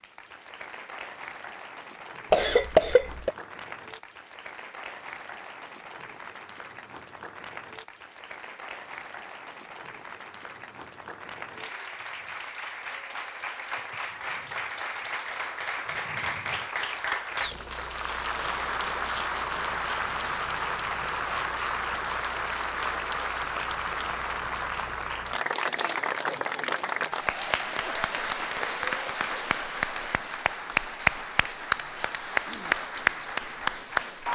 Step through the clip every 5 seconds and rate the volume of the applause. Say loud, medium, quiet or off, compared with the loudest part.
quiet, quiet, medium, loud, loud, loud, loud.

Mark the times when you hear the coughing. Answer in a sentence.
The coughing can be heard from 2.3 to 3.3 s.